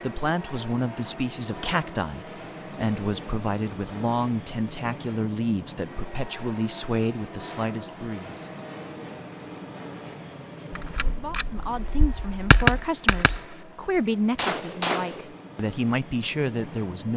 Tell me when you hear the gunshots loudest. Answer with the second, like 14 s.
13 s.